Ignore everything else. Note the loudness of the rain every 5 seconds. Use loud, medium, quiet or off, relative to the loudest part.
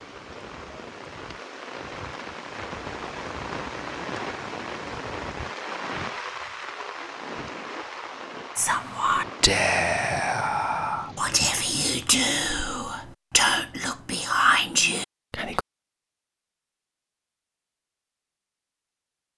loud, loud, medium, off.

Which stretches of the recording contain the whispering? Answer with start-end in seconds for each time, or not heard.
8.6-15.6.